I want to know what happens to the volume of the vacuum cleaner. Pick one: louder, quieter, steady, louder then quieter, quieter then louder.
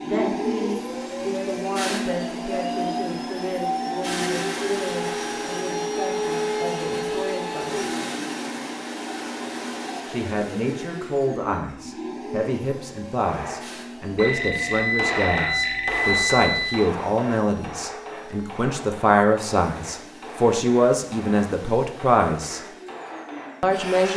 quieter.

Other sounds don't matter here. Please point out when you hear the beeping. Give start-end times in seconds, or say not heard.
14.2-16.9.